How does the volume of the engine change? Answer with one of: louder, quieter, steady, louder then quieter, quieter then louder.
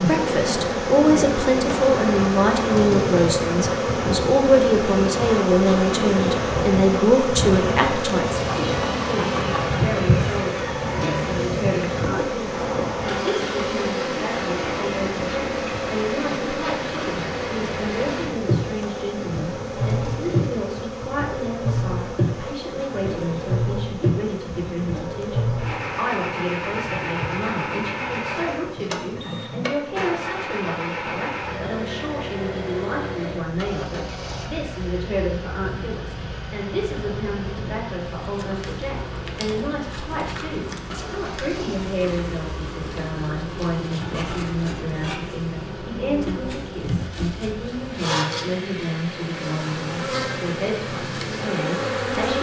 quieter.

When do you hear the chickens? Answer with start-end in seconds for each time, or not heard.
8.2-9.8.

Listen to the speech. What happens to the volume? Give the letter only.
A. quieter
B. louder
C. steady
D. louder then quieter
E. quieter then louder
A.